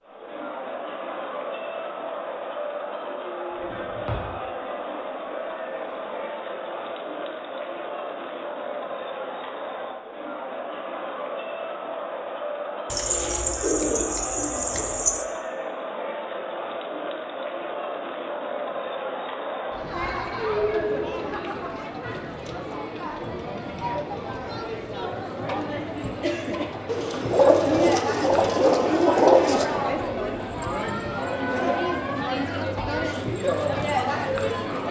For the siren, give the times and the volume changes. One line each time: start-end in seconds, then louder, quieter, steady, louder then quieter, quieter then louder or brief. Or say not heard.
not heard.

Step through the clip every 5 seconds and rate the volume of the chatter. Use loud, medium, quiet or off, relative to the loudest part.
medium, medium, medium, medium, loud, loud, loud.